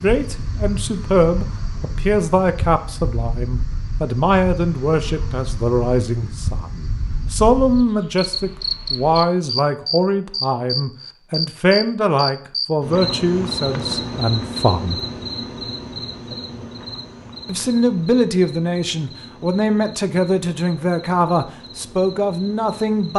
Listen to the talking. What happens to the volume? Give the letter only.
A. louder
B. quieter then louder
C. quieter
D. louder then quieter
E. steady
E.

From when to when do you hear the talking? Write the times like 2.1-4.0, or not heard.
0.0-15.0, 17.4-23.1.